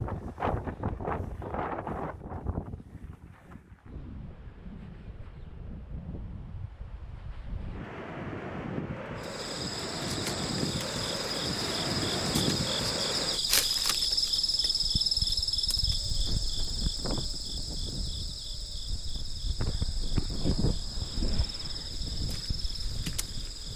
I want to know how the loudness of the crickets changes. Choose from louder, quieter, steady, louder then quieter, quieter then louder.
louder then quieter.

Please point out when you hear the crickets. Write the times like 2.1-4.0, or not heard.
9.2-23.7.